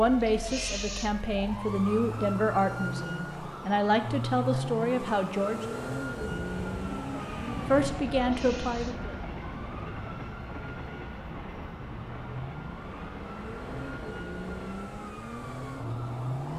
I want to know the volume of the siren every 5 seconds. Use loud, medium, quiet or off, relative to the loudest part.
loud, loud, medium, loud.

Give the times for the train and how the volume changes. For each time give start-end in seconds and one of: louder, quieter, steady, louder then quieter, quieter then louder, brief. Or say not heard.
6.0-16.5 quieter.